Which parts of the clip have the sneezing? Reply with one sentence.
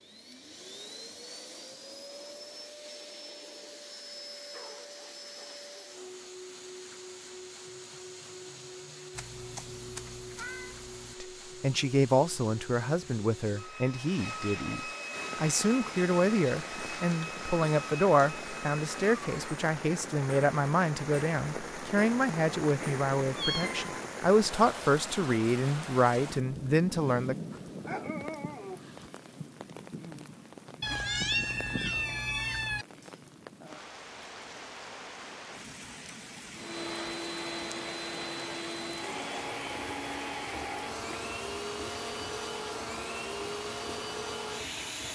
The sneezing can't be heard in this clip.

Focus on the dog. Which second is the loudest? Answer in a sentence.
The volume of the dog peaks at 28 seconds.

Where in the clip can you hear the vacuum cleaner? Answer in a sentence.
The vacuum cleaner can be heard from 0.0 to 19.6 s and from 36.5 to 45.1 s.